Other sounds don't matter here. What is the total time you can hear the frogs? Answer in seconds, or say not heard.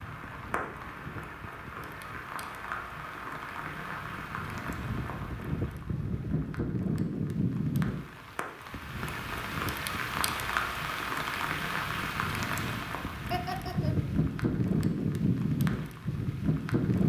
not heard.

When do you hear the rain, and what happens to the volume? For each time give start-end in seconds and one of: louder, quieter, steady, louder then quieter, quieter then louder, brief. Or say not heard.
0.0-17.0 louder.